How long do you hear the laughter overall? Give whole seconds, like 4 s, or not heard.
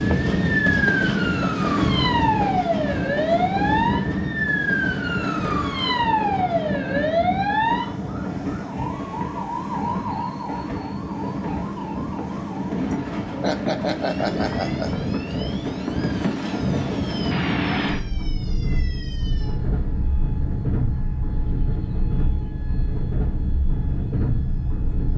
2 s.